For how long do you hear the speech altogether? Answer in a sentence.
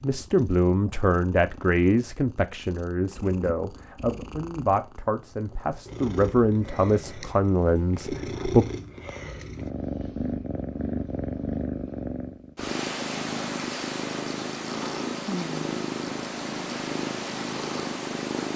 The speech can be heard for 9 seconds in total.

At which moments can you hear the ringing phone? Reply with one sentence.
You can't hear the ringing phone here.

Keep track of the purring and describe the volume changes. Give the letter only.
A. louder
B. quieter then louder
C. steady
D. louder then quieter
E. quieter
A.